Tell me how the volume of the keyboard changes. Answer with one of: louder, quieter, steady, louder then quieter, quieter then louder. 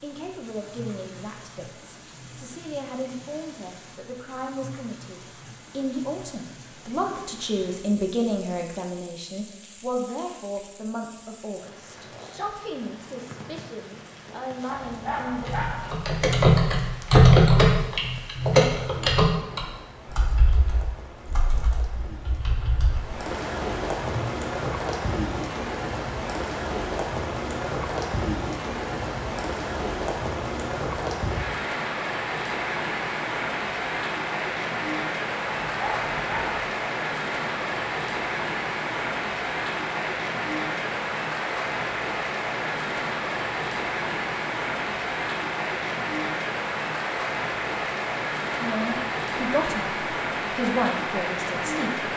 quieter.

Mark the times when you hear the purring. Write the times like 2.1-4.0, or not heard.
not heard.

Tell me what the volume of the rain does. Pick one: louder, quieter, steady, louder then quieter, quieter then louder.
louder.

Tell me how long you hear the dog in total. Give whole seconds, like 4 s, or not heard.
2 s.